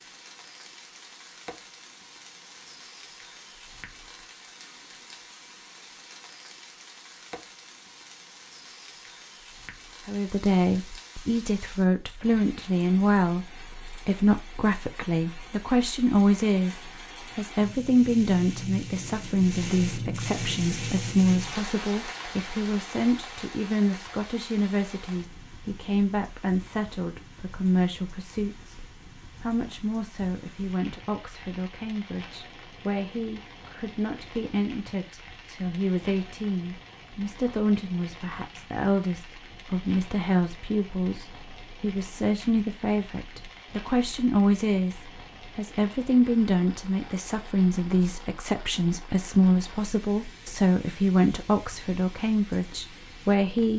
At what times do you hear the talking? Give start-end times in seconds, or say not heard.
10.1-28.8, 29.4-53.7.